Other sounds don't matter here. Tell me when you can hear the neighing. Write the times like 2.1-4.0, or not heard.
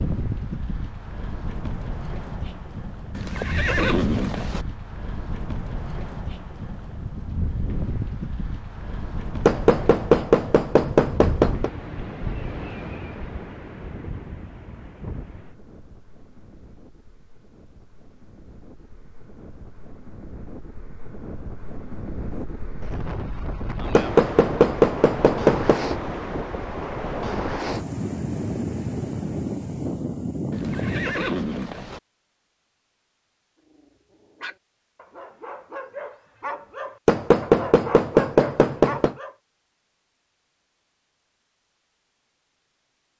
3.1-4.7, 30.5-32.0.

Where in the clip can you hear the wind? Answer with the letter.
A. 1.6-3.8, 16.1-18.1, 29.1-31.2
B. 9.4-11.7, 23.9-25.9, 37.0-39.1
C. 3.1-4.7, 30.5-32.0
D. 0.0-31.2
D.